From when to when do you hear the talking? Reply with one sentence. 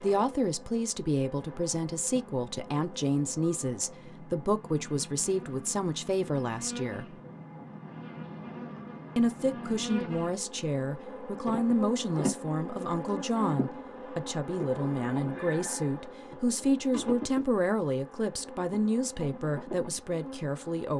The talking can be heard from 0.0 to 7.2 s and from 9.2 to 20.9 s.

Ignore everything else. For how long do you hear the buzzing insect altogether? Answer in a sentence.
The buzzing insect can be heard for 21 seconds in total.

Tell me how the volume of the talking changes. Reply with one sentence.
The volume of the talking stays about the same.